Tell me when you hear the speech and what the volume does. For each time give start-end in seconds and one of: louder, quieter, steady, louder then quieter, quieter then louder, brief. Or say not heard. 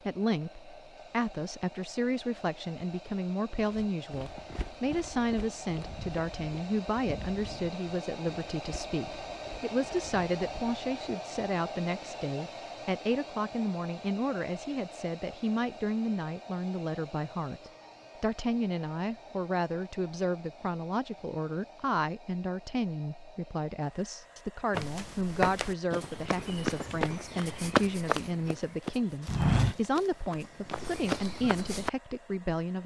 0.1-32.8 steady.